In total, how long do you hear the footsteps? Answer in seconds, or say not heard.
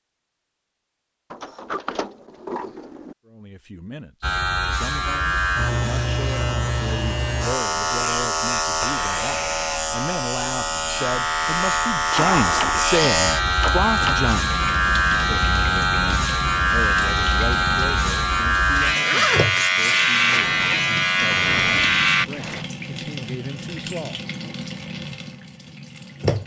not heard.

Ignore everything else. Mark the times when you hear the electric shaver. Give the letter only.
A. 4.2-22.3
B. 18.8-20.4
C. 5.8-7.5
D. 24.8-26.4
A.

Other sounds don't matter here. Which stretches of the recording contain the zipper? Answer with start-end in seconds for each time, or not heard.
18.8-20.4.